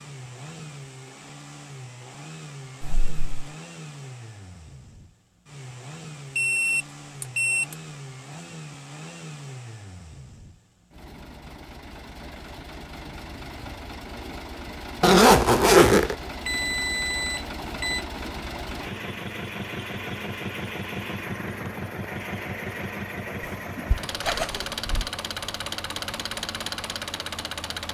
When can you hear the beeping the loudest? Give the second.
7 s.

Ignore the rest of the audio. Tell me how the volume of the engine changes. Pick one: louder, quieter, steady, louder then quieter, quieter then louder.
louder.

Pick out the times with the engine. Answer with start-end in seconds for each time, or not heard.
0.0-27.8.